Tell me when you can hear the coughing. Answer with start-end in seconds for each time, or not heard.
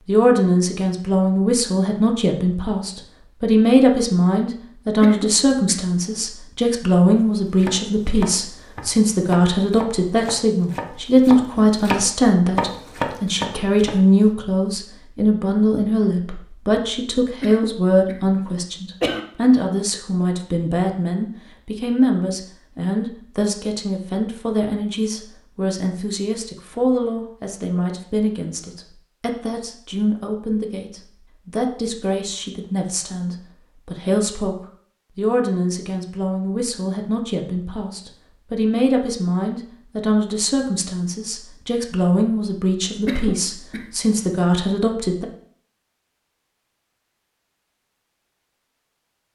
5.0-6.2, 17.4-19.2, 43.0-44.0.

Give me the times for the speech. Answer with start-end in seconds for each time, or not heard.
0.1-45.2.